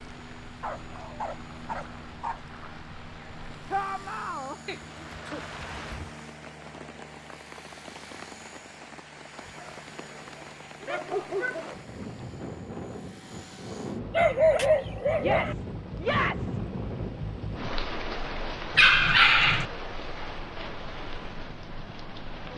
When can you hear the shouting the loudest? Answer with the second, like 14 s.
16 s.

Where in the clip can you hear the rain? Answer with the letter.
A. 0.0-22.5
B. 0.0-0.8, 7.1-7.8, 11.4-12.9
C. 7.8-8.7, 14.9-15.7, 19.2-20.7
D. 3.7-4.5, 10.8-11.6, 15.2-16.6
A.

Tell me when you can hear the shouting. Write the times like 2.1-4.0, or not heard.
3.7-4.5, 10.8-11.6, 15.2-16.6.